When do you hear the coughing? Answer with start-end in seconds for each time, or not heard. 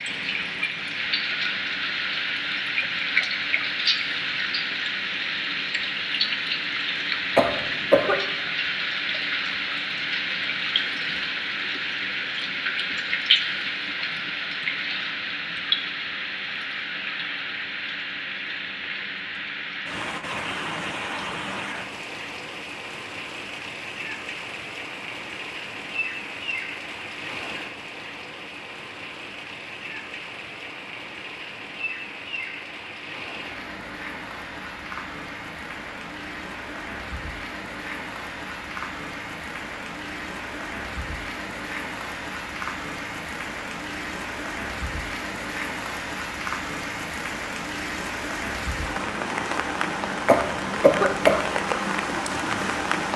7.3-8.2, 50.2-51.5.